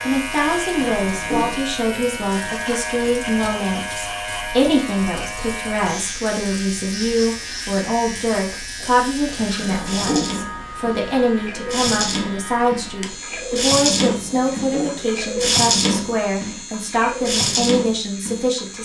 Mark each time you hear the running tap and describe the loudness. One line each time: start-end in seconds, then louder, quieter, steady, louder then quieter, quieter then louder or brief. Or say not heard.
0.1-18.8 louder.